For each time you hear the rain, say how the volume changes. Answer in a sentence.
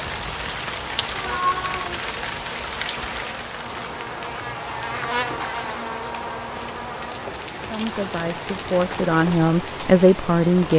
The rain can be heard from 0.0 to 10.7 s, getting quieter then louder.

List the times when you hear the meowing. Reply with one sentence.
You can hear the meowing from 1.1 to 2.0 s.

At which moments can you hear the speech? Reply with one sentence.
The speech can be heard from 7.7 to 10.7 s.